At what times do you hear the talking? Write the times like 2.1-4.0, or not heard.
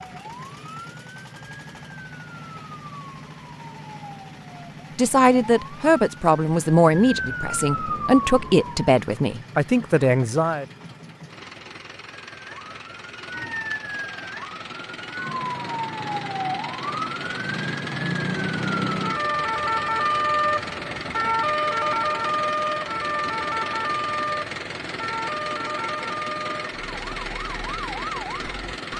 5.0-10.7.